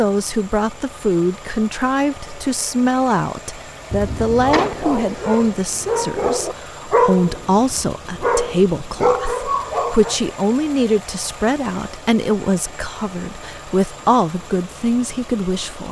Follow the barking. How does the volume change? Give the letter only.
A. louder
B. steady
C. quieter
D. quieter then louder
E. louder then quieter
A.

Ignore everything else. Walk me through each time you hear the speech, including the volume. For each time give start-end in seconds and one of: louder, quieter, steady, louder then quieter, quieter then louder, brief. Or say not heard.
0.0-15.8 steady.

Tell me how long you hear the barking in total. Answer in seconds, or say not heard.
6 s.